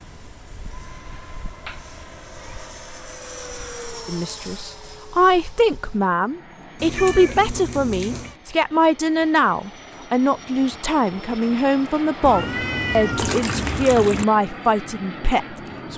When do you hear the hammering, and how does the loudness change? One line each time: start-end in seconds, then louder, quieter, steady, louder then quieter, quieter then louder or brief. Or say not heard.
not heard.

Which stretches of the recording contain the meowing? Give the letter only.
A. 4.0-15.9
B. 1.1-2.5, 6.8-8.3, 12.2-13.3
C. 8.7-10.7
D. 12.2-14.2
B.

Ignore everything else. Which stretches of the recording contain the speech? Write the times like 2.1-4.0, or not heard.
4.0-15.9.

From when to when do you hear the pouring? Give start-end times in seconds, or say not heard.
12.2-14.2.